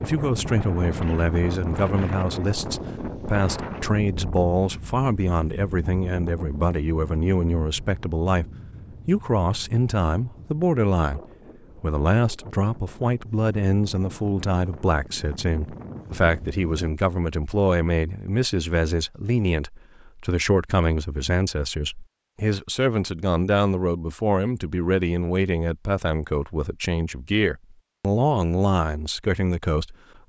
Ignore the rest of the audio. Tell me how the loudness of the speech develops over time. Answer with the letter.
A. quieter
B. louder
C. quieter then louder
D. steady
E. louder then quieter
D.